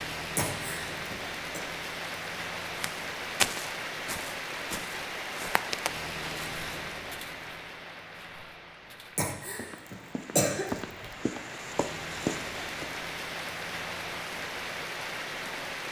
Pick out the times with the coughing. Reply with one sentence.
You can hear the coughing from 0.3 to 1.6 s and from 9.2 to 11.2 s.